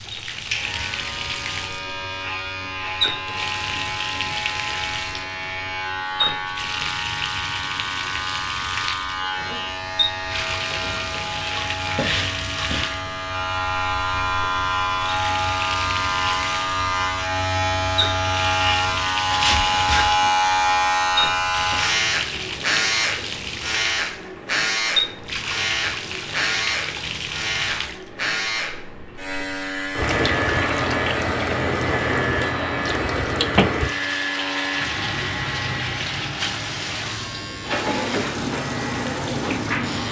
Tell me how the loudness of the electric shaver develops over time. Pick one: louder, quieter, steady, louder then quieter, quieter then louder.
louder then quieter.